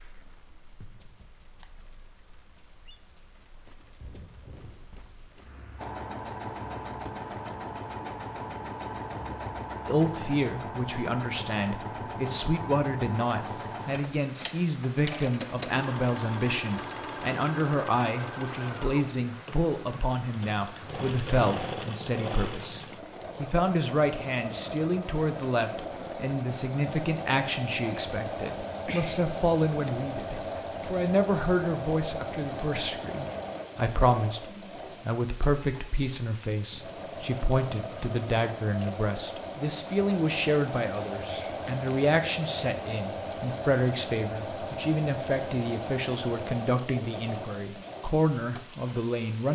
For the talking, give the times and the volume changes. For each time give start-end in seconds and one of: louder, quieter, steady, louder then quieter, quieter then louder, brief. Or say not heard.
9.8-49.5 steady.